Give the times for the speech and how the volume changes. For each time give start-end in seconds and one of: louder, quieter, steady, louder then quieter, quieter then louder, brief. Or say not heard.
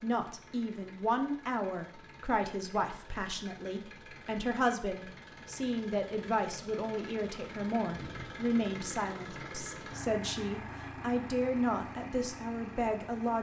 0.0-13.3 steady.